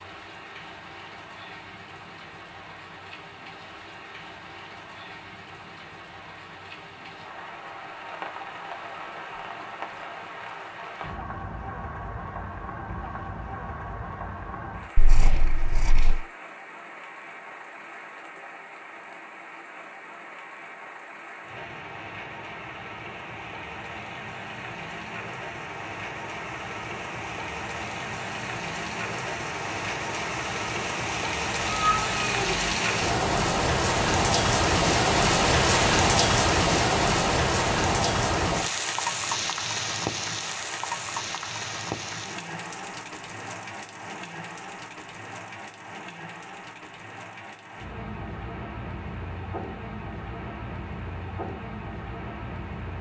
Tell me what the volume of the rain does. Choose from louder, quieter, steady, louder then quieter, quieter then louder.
louder then quieter.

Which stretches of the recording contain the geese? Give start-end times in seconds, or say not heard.
not heard.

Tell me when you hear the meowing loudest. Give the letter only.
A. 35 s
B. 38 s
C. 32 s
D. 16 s
C.